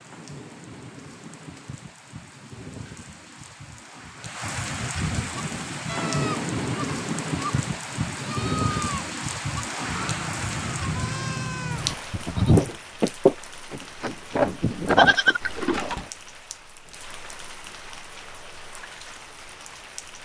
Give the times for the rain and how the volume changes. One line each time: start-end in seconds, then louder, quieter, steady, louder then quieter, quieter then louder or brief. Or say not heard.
0.0-20.2 louder then quieter.